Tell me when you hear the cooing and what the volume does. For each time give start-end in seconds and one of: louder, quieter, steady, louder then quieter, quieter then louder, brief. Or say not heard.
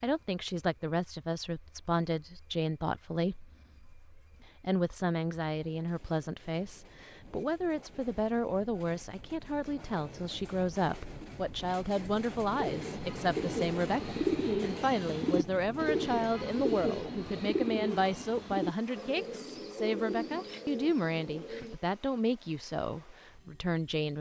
12.5-21.8 quieter.